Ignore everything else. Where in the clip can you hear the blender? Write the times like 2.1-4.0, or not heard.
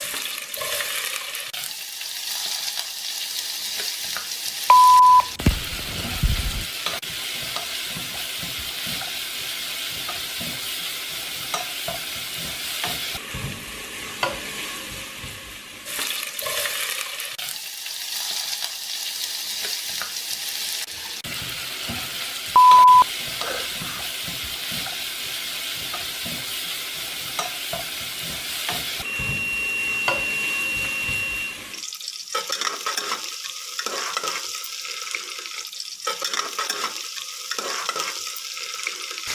not heard.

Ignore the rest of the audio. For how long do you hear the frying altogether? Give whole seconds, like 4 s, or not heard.
39 s.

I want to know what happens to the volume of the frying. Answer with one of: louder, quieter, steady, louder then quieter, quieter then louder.
steady.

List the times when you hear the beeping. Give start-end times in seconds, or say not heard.
4.7-6.7, 22.6-23.9, 29.2-31.4.